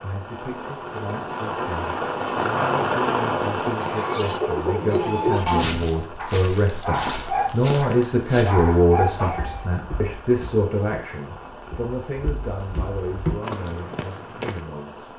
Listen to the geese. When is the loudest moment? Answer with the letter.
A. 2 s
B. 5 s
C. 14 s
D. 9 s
B.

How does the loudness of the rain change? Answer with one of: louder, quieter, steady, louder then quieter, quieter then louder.
quieter.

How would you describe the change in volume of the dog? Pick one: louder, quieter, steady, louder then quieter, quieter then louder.
quieter then louder.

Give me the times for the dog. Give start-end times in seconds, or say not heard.
4.2-9.7.